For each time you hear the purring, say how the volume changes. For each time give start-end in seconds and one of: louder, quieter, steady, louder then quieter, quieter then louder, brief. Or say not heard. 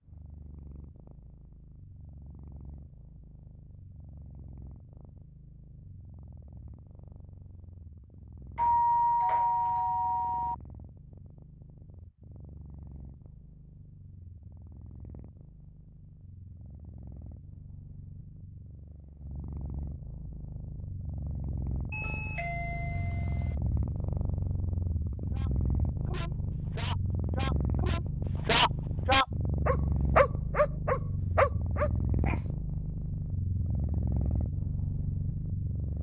0.0-35.9 louder.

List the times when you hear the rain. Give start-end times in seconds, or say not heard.
not heard.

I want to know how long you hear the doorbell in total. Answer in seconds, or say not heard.
4 s.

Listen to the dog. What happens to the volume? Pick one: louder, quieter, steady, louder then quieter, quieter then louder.
louder.